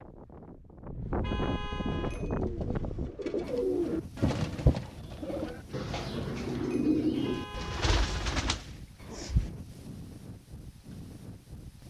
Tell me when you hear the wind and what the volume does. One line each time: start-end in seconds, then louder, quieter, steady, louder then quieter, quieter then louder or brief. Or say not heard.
0.0-11.8 quieter.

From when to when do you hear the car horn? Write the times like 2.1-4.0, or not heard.
1.0-2.2, 7.1-8.3.